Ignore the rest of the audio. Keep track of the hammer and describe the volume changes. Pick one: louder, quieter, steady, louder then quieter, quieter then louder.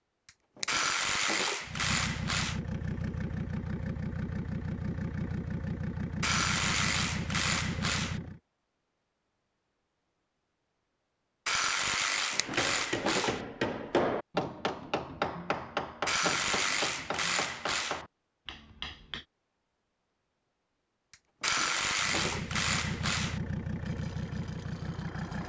quieter.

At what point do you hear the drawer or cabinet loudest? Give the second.
13 s.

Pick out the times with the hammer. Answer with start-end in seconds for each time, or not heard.
12.4-19.2.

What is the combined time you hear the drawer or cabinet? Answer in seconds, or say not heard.
4 s.